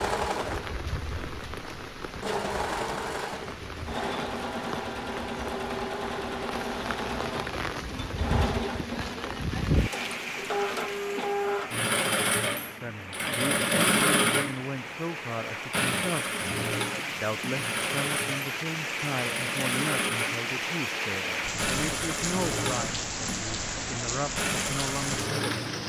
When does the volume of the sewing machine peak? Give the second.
14 s.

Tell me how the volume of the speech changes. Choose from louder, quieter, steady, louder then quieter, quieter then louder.
steady.